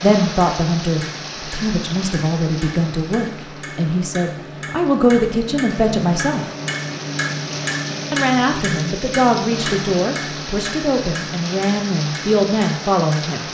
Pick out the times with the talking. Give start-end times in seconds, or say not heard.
0.0-6.5, 8.1-13.4.